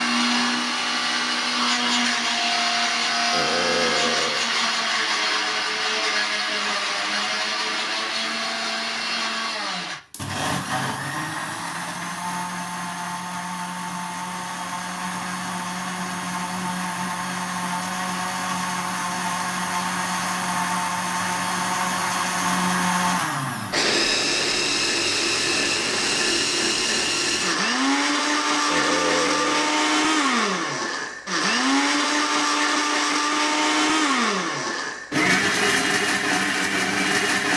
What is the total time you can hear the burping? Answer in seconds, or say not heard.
2 s.